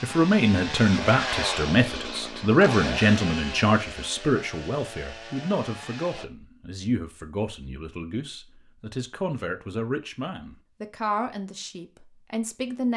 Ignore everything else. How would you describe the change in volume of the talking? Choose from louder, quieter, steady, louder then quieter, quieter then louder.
quieter.